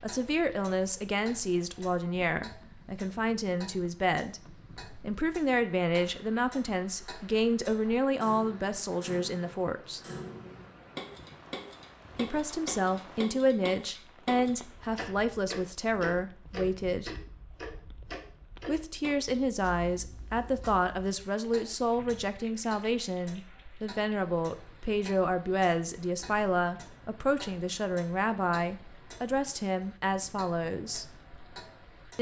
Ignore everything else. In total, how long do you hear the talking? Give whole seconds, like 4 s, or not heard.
27 s.